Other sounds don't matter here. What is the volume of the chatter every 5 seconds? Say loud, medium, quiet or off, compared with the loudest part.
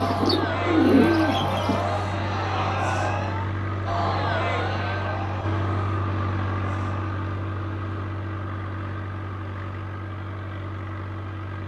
loud, medium, off.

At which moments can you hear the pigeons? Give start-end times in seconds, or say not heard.
0.0-1.8.